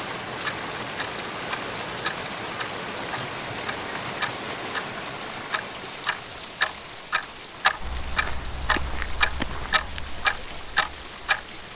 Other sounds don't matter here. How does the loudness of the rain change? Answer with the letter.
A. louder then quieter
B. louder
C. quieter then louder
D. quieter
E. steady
D.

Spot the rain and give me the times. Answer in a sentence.
You can hear the rain from 0.0 to 11.7 s.